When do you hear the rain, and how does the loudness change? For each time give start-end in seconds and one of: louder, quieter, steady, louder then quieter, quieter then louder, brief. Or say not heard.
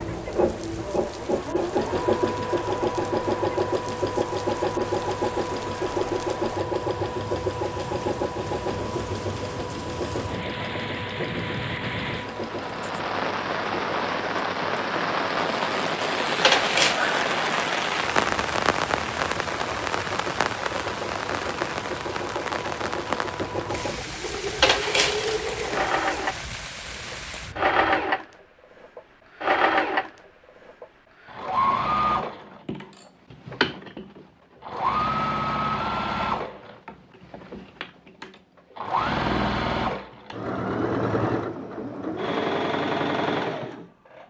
0.0-28.1 louder then quieter.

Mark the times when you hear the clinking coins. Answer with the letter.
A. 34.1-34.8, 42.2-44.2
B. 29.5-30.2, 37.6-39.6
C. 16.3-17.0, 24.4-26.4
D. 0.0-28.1
C.